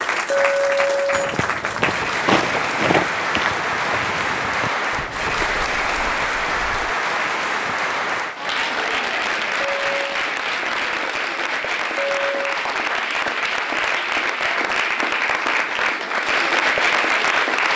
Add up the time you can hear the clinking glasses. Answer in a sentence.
The clinking glasses can be heard for 2 seconds in total.